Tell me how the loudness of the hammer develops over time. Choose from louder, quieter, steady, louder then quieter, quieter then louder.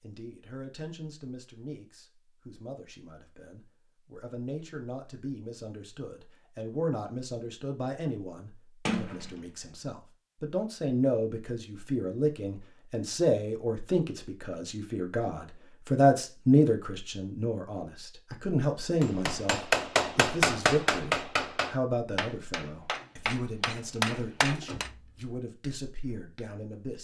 quieter then louder.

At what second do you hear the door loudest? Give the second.
9 s.